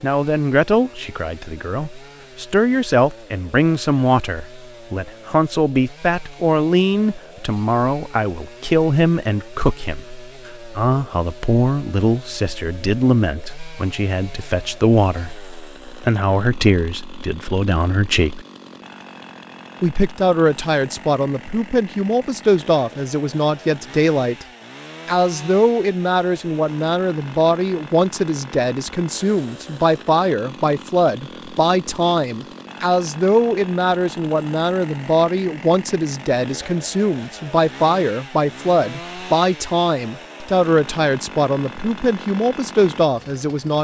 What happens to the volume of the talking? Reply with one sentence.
The loudness of the talking stays about the same.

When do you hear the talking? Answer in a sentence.
The talking can be heard from 0.0 to 18.4 s, from 19.8 to 24.4 s and from 25.1 to 43.7 s.